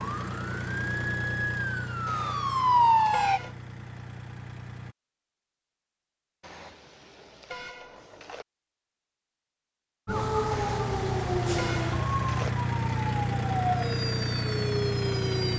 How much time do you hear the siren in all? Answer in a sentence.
You can hear the siren for 9 seconds altogether.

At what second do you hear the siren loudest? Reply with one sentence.
The volume of the siren peaks at 3 seconds.